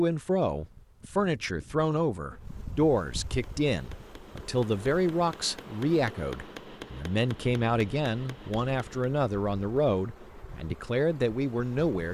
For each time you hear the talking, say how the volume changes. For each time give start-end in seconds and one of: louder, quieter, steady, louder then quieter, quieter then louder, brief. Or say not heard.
0.0-12.0 steady.